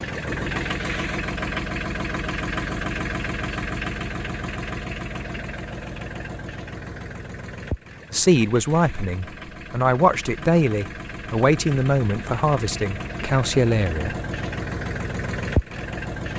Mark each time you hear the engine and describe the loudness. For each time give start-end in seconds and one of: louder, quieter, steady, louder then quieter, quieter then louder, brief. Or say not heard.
0.0-16.3 quieter then louder.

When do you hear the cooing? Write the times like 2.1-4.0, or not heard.
not heard.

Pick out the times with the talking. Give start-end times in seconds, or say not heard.
8.1-14.2.